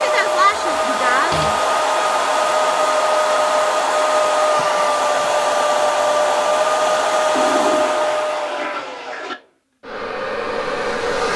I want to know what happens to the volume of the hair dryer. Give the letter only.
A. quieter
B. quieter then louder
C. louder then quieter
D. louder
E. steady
A.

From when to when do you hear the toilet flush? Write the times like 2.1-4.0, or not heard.
0.5-1.7, 7.3-9.3.